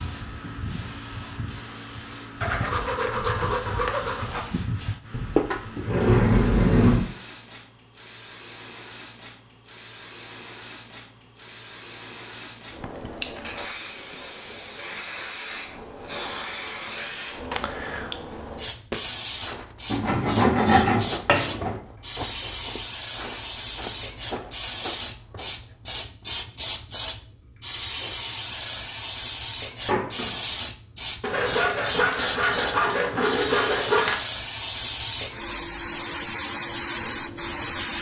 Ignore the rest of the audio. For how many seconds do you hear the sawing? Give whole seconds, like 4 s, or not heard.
7 s.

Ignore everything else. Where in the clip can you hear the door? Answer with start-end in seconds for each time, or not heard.
5.1-7.0, 29.9-30.4.